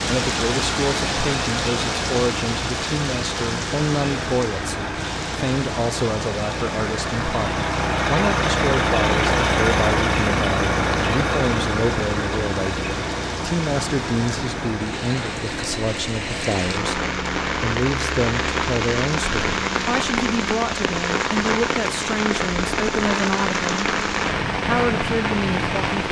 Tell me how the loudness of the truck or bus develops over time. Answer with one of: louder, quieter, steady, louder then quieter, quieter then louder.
louder then quieter.